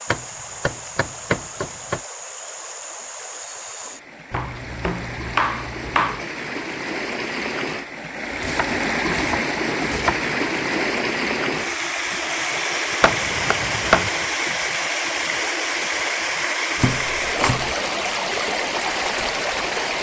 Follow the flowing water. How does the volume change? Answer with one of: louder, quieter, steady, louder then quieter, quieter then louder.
louder.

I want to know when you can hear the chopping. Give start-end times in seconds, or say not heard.
0.1-2.0, 4.3-6.2, 8.3-10.2, 13.0-14.1, 16.8-17.8.